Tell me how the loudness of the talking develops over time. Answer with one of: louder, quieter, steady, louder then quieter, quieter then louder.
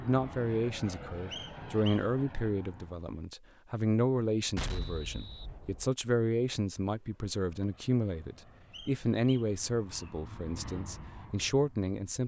steady.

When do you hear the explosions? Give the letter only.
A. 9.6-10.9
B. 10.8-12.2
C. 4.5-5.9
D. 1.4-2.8
C.